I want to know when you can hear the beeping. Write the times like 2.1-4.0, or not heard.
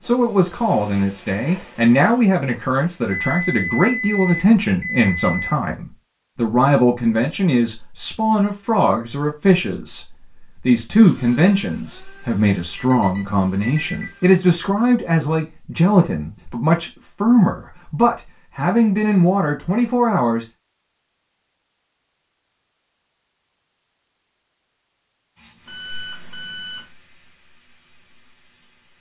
3.1-5.5, 12.6-14.2, 25.6-26.9.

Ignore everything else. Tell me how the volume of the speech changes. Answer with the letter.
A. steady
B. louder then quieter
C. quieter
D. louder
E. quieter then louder
A.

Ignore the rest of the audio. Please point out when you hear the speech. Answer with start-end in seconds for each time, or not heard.
0.0-20.4.